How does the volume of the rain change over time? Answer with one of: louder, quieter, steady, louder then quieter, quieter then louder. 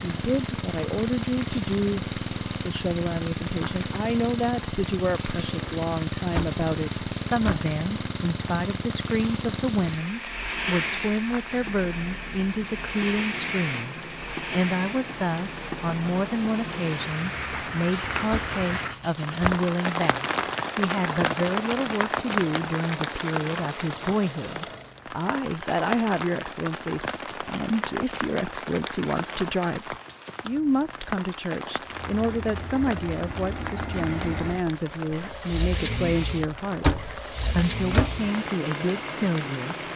louder then quieter.